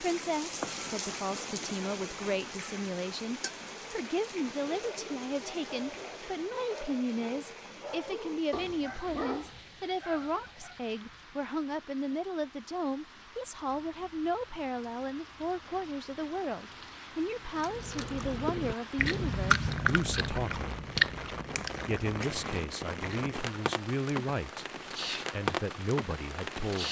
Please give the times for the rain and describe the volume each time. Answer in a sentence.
The rain can be heard from 0.0 to 26.8 s, getting quieter then louder.